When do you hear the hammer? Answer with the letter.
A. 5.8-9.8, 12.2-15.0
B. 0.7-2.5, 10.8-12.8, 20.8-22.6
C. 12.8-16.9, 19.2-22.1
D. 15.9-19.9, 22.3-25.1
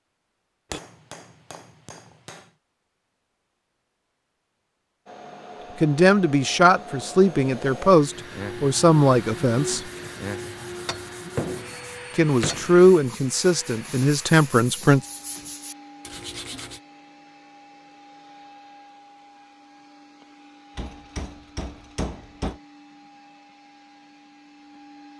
B.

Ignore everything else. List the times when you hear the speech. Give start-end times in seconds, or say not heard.
5.8-9.8, 12.2-15.0.